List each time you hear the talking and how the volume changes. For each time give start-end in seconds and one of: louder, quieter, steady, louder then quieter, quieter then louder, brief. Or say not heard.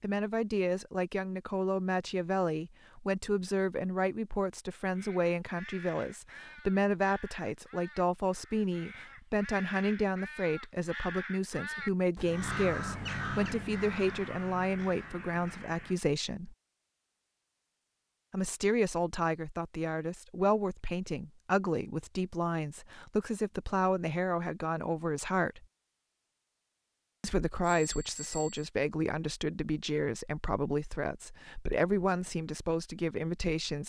0.0-16.6 steady
18.3-25.6 steady
27.2-33.8 steady.